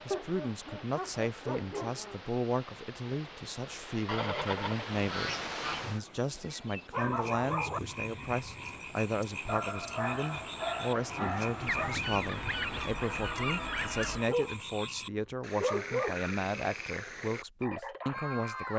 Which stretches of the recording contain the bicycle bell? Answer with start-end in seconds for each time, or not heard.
not heard.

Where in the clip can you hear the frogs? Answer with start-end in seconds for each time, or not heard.
6.2-18.7.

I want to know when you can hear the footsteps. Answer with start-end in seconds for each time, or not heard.
not heard.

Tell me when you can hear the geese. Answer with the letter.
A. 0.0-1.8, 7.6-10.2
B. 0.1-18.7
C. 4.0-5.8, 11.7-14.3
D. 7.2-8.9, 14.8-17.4
C.